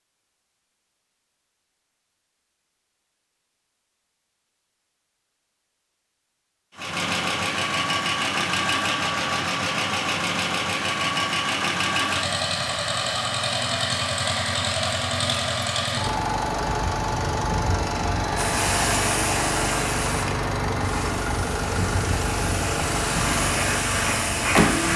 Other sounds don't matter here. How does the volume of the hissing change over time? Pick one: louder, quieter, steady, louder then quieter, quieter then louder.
quieter then louder.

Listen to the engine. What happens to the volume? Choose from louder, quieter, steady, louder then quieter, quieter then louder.
steady.